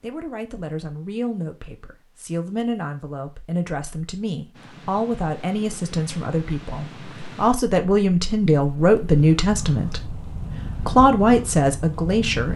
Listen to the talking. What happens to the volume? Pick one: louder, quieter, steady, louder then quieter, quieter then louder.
louder.